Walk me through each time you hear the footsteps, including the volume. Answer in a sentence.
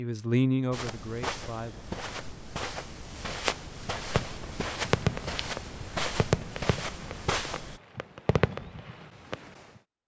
You can hear the footsteps from 0.7 to 7.8 s, at a steady volume.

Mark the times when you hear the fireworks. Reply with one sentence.
The fireworks can be heard from 4.0 to 9.6 s.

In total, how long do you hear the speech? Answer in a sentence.
The speech can be heard for 2 seconds in total.